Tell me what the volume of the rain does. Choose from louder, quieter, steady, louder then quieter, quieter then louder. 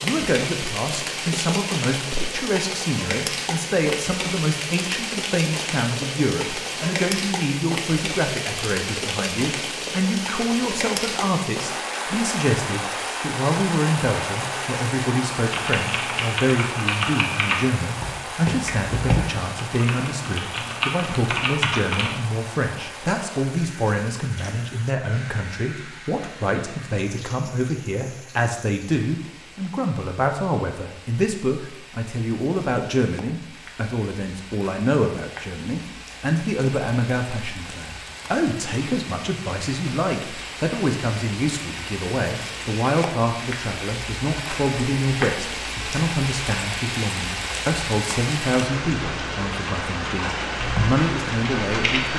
quieter then louder.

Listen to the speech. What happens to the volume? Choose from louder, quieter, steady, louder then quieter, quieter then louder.
steady.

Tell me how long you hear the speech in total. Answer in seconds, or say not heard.
52 s.